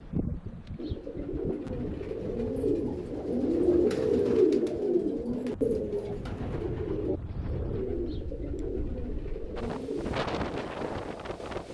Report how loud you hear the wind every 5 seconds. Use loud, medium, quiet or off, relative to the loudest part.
medium, medium, loud.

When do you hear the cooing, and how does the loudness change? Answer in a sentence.
The cooing can be heard from 0.8 to 10.2 s, getting louder then quieter.